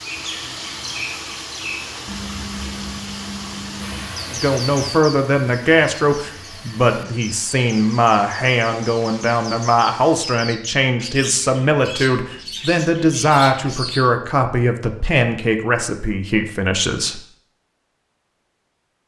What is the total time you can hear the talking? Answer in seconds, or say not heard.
13 s.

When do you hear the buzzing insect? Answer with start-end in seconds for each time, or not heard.
not heard.